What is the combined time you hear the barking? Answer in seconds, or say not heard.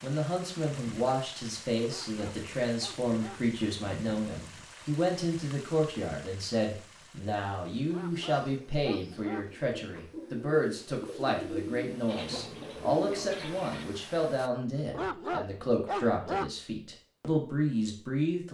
5 s.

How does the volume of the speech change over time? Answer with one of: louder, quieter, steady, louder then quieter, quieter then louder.
steady.